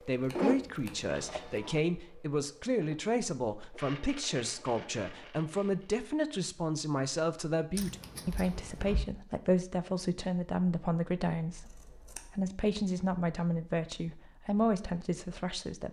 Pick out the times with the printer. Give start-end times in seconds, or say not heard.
0.0-5.9.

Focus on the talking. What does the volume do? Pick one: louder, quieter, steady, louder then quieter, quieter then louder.
steady.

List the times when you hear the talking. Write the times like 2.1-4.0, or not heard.
0.1-15.8.